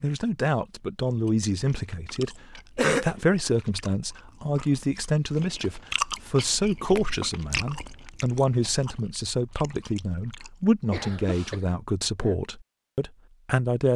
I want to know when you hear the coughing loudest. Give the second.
3 s.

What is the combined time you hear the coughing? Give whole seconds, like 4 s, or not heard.
2 s.